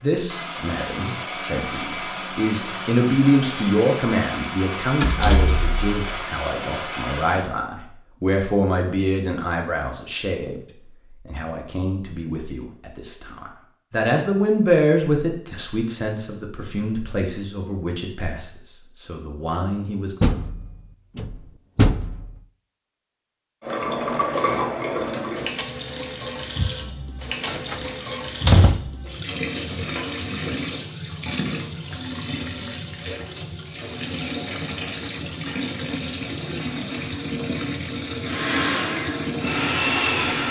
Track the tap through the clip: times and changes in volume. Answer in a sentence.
You can hear the tap from 23.6 to 40.4 s, at a steady volume.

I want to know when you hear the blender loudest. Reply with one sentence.
The volume of the blender peaks at 40 seconds.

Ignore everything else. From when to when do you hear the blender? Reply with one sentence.
The blender can be heard from 0.0 to 7.5 s and from 38.2 to 40.4 s.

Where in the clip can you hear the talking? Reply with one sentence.
You can hear the talking from 0.0 to 10.6 s and from 11.2 to 20.1 s.